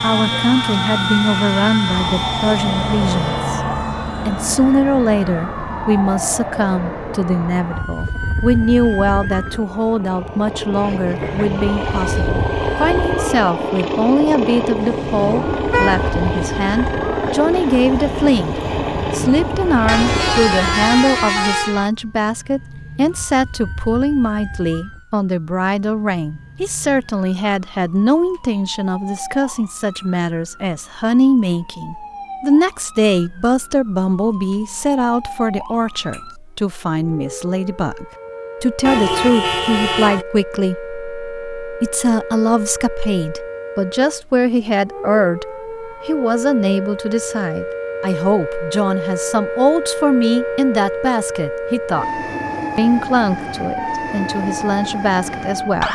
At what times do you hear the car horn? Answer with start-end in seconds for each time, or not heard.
14.8-16.1, 19.9-21.9, 38.8-40.2.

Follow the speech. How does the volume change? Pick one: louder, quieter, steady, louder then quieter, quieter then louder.
steady.